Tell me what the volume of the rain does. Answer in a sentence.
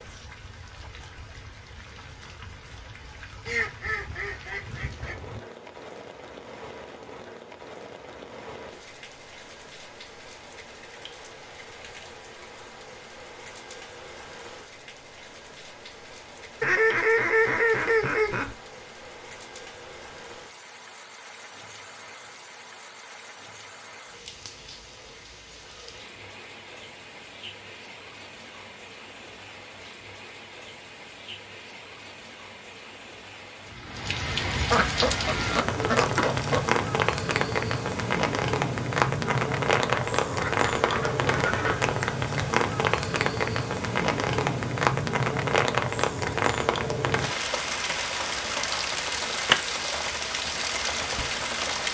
The loudness of the rain goes up.